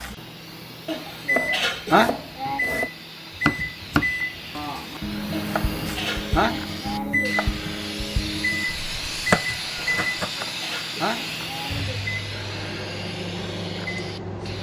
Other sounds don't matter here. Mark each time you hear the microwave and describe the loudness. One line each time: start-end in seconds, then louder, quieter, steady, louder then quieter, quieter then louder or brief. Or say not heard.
0.0-14.5 steady.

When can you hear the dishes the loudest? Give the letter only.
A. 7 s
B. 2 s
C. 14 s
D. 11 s
B.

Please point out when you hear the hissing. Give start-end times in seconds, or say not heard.
0.0-14.5.